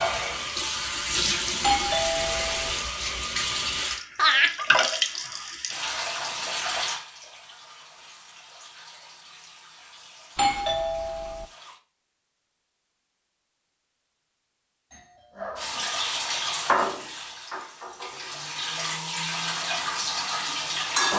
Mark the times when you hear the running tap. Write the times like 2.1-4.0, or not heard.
0.0-11.8, 15.6-21.1.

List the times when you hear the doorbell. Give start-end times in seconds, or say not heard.
1.6-2.8, 10.3-11.4, 14.9-15.9.